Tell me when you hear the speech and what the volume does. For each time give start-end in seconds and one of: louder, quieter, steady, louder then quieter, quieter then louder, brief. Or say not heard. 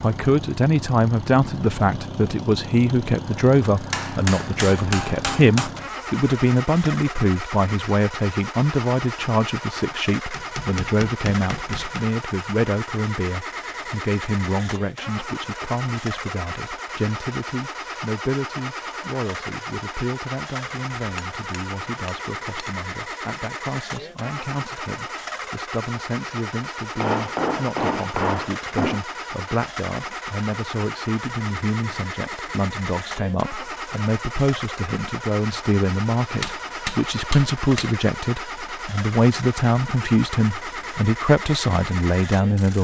0.0-42.7 quieter then louder.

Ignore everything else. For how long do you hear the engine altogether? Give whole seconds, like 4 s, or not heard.
43 s.